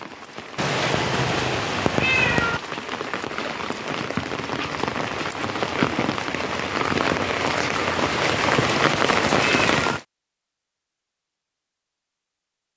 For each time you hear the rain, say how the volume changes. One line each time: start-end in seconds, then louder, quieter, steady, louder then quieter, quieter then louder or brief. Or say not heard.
0.0-10.0 louder.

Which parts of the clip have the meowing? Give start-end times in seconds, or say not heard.
0.6-2.6, 8.0-10.0.